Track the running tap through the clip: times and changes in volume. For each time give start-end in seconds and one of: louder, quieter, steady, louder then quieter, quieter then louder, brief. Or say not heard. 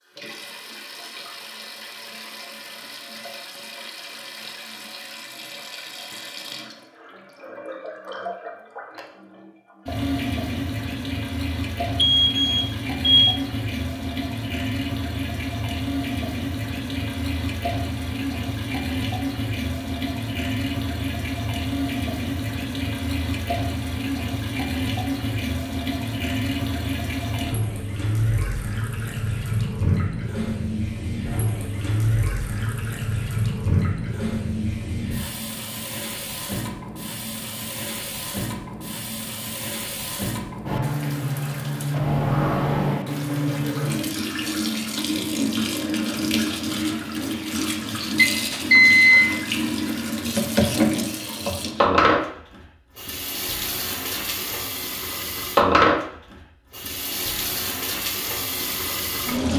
0.0-59.5 louder.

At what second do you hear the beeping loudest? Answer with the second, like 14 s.
49 s.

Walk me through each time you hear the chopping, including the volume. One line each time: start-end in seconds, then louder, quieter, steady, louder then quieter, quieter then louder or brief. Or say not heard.
not heard.